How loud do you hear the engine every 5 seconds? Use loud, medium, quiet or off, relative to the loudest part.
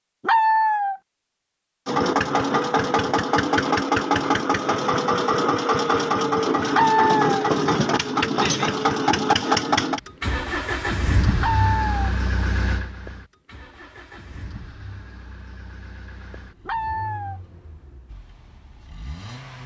loud, loud, medium, quiet.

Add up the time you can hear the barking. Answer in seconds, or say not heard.
3 s.